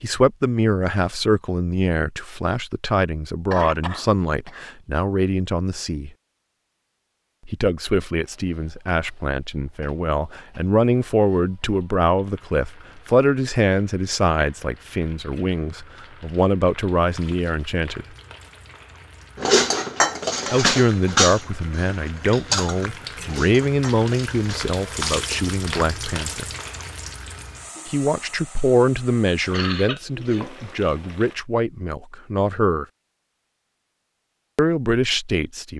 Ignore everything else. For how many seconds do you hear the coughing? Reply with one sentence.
The coughing can be heard for 2 seconds in total.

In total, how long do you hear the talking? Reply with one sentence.
You can hear the talking for 29 seconds altogether.